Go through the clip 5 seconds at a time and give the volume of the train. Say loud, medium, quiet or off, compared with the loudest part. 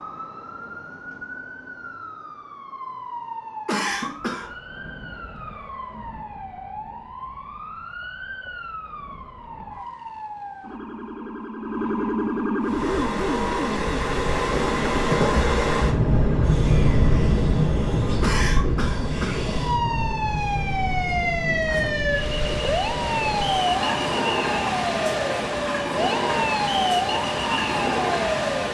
off, off, loud, loud, medium, medium.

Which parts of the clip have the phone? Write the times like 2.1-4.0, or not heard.
not heard.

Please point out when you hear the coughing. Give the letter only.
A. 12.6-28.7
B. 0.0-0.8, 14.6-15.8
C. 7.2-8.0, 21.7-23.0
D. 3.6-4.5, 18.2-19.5
D.